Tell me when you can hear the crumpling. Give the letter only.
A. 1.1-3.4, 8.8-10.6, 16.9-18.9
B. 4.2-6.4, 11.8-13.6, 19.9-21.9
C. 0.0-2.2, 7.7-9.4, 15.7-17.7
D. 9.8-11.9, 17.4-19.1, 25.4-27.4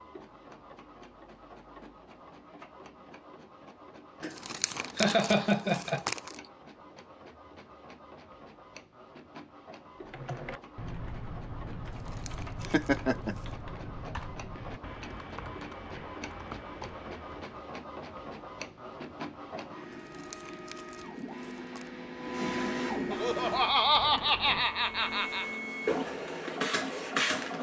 B.